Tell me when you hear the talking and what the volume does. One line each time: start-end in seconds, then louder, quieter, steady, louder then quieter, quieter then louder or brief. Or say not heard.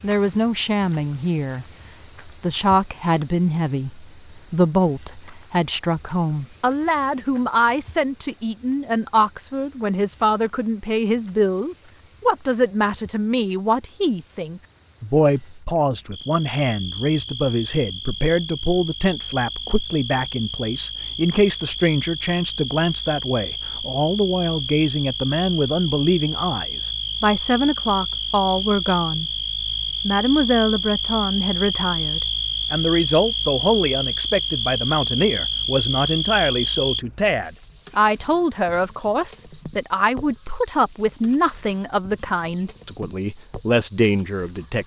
0.0-1.6 brief
2.2-29.3 steady
30.1-44.8 steady.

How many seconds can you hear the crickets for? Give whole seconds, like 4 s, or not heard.
45 s.